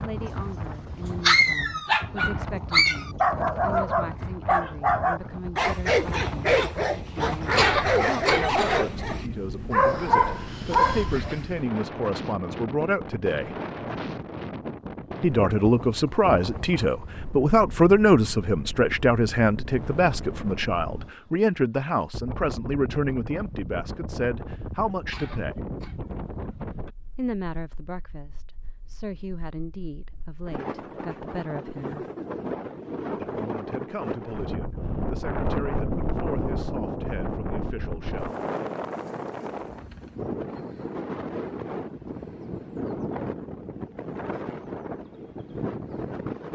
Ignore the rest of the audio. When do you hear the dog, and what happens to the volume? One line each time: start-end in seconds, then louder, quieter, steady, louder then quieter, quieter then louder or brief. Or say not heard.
0.2-11.4 steady.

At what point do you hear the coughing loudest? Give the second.
8 s.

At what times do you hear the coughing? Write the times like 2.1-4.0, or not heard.
7.5-8.8, 25.1-25.9.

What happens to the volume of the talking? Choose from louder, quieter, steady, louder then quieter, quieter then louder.
louder then quieter.